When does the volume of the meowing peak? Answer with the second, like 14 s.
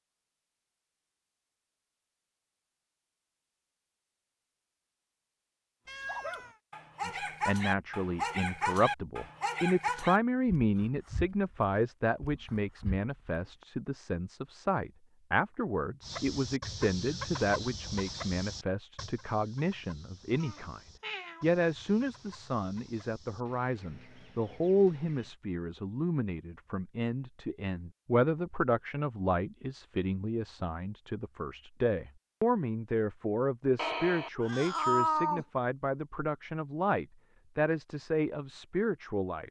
35 s.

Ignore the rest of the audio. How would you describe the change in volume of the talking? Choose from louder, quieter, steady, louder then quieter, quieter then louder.
steady.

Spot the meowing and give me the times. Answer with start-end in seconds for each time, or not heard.
5.8-6.5, 20.4-21.4, 33.8-35.5.